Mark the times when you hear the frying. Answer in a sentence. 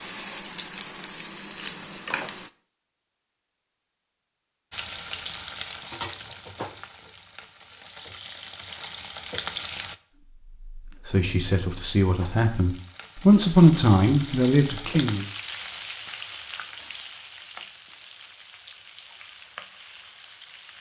You can hear the frying from 0.0 to 2.5 s, from 4.7 to 9.9 s and from 11.7 to 20.7 s.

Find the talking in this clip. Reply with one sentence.
The talking can be heard from 10.8 to 15.2 s.